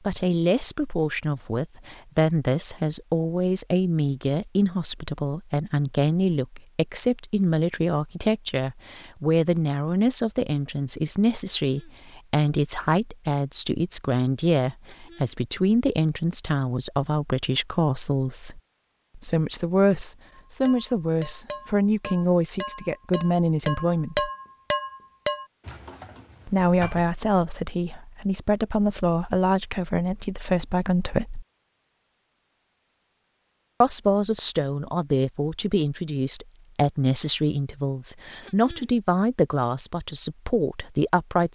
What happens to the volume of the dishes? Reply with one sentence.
The loudness of the dishes goes up, then down.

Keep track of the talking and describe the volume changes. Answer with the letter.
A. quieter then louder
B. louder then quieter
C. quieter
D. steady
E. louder
D.